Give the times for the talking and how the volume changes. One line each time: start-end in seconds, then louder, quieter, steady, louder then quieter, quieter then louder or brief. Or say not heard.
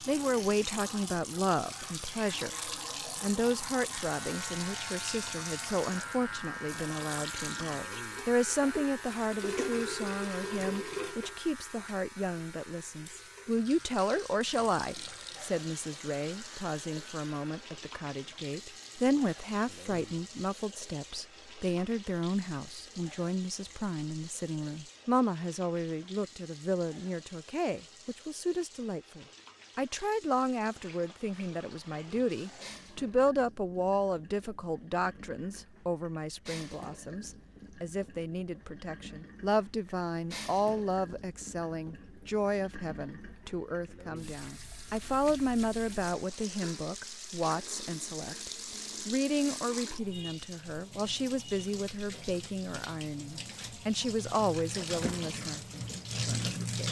0.1-56.8 steady.